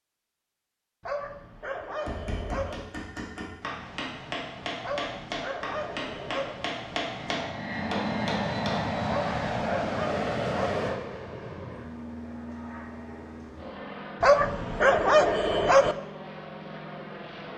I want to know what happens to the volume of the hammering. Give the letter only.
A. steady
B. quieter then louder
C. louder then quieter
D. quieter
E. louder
E.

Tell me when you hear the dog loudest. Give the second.
15 s.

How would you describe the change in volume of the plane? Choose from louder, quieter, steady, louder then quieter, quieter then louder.
quieter.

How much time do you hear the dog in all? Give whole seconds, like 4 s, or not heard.
7 s.